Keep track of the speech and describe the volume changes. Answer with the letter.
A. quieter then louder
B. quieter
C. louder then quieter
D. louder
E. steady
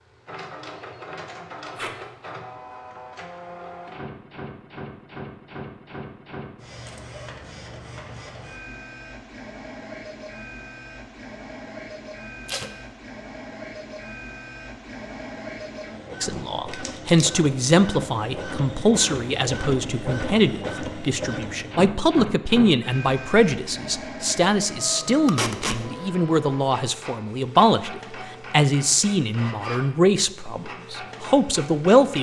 E.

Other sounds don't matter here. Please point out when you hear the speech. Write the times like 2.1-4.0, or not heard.
16.2-32.1.